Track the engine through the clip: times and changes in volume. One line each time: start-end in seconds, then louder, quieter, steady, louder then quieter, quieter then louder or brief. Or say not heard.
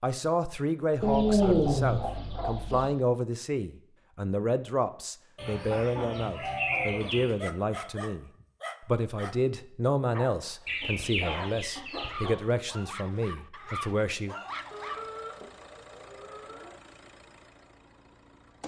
14.4-18.6 quieter.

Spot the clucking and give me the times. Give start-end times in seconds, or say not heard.
1.0-2.9, 5.3-7.3, 10.7-12.3, 14.7-16.7.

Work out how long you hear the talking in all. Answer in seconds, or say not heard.
14 s.